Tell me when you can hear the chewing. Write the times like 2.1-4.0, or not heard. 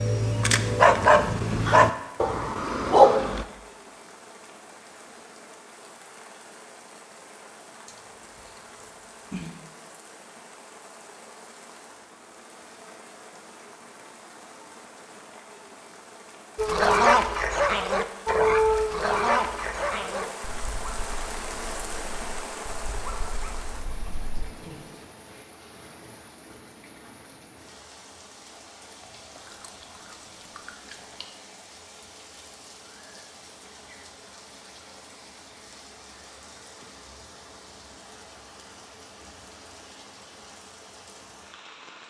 7.8-9.6, 29.4-31.2.